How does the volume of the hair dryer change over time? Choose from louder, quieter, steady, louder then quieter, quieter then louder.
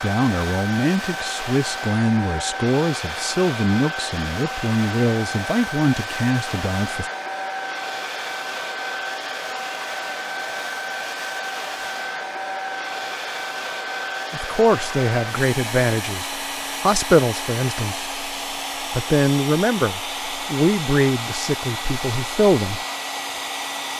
steady.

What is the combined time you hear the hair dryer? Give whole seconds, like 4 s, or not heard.
24 s.